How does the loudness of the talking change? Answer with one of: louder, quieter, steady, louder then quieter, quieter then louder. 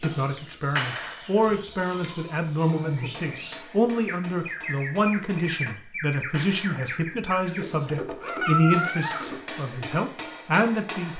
steady.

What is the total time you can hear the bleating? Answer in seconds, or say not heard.
4 s.